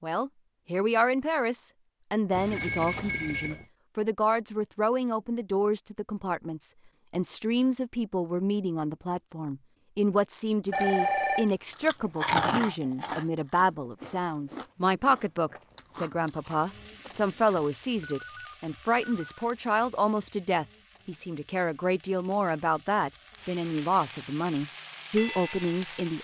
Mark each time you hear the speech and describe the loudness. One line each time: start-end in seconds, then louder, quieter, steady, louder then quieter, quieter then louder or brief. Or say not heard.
0.0-26.2 steady.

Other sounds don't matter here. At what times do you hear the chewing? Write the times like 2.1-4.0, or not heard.
10.7-17.6.